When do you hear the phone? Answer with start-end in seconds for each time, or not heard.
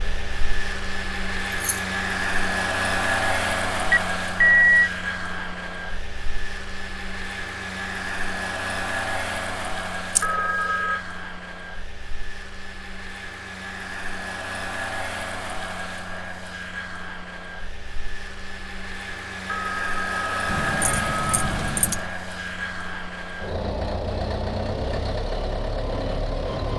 3.9-4.9, 10.2-11.0, 19.4-21.5.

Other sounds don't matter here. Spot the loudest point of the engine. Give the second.
3 s.